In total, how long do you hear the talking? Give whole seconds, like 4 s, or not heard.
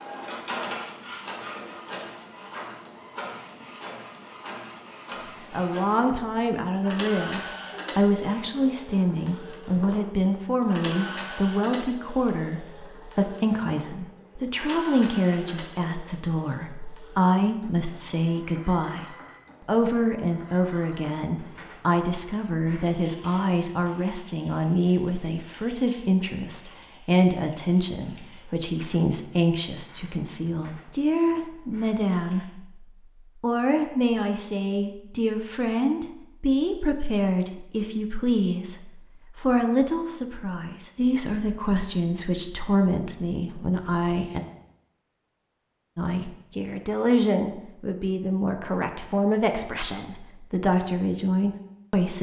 44 s.